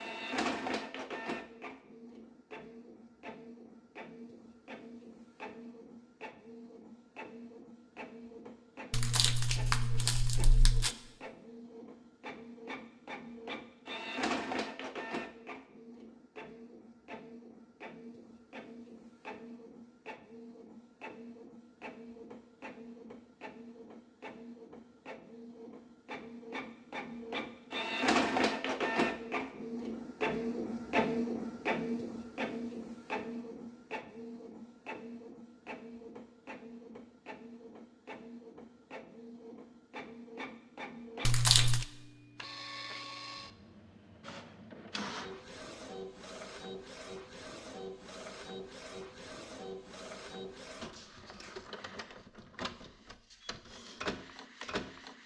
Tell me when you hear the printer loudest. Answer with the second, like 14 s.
29 s.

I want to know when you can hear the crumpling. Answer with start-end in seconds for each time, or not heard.
8.9-10.9, 41.2-41.9.